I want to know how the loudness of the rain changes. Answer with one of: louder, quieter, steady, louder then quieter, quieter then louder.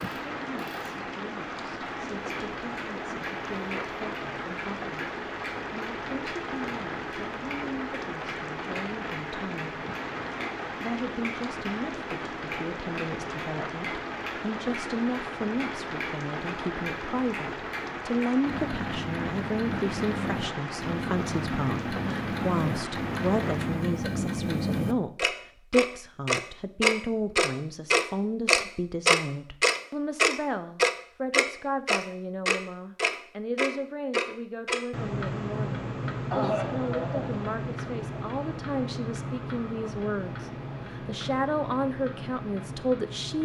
steady.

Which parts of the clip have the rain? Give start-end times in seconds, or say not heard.
0.0-24.1.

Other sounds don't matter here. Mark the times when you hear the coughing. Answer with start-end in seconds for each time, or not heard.
36.3-37.4.